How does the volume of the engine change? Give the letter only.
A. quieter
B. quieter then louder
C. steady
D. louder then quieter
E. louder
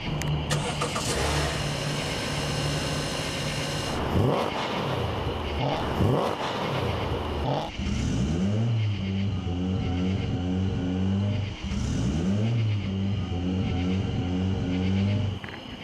C.